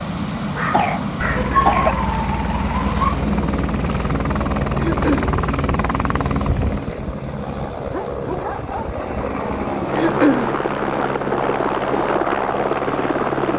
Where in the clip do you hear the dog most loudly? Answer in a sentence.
The volume of the dog peaks at 2 seconds.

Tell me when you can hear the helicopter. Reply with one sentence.
The helicopter can be heard from 0.0 to 13.5 s.